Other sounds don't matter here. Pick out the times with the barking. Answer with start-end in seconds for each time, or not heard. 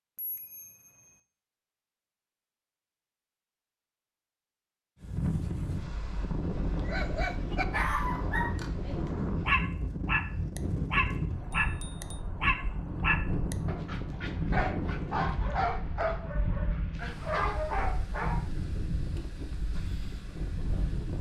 6.8-18.4.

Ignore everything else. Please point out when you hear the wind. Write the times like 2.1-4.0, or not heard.
5.0-21.1.